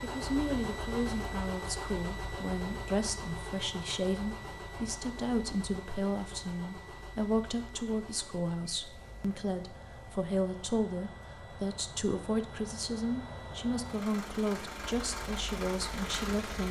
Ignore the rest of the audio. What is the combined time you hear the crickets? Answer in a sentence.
You can't hear the crickets here.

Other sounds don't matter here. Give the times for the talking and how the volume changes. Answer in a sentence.
The talking can be heard from 0.0 to 16.6 s, at a steady volume.